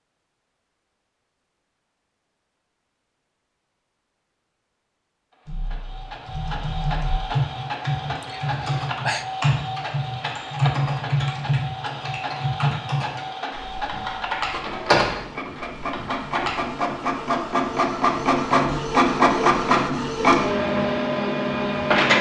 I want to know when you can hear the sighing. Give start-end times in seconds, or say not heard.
8.2-9.2.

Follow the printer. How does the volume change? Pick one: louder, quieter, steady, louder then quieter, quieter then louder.
louder.